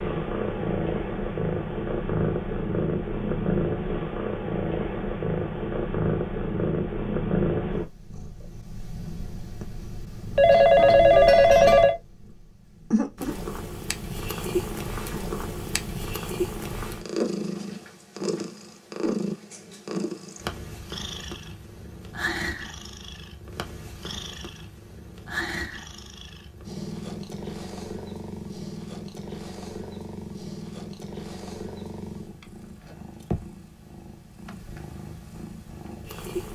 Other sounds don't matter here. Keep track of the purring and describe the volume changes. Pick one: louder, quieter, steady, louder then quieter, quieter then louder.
quieter.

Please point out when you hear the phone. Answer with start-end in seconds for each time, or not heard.
10.3-11.9.